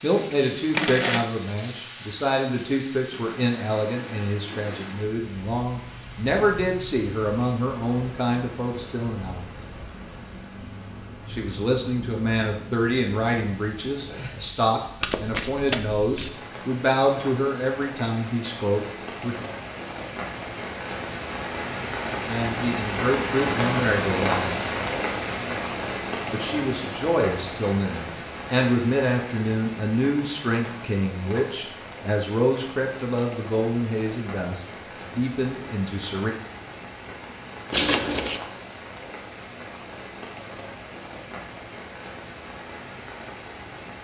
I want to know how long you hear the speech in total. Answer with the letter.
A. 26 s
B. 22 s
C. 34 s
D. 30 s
D.